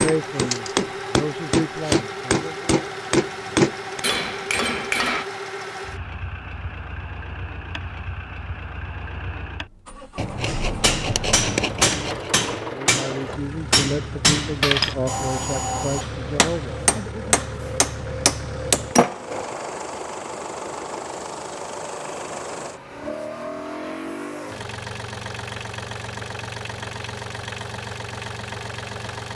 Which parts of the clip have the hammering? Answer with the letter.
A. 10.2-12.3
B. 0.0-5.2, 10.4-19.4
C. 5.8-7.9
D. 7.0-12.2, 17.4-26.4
B.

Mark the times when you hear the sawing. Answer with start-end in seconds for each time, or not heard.
10.2-12.3.